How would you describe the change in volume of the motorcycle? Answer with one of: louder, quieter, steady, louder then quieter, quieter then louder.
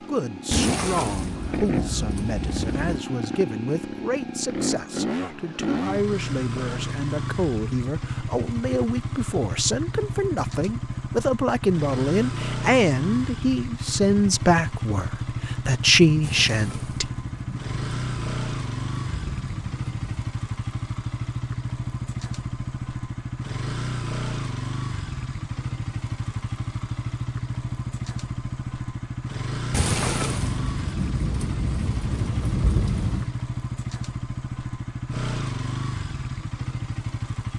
steady.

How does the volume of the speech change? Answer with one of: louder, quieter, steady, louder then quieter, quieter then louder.
louder.